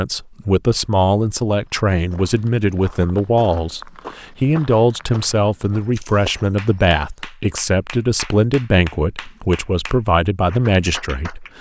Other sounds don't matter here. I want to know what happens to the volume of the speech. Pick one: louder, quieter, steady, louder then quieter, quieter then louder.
steady.